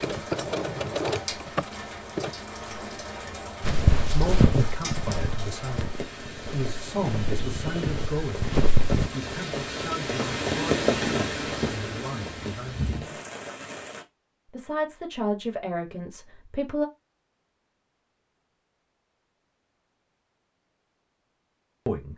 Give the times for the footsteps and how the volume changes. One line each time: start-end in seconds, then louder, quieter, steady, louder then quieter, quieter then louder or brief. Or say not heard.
3.6-9.1 quieter then louder.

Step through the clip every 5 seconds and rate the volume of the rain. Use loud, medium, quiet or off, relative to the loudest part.
medium, medium, loud, off, off.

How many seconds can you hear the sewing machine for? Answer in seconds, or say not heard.
2 s.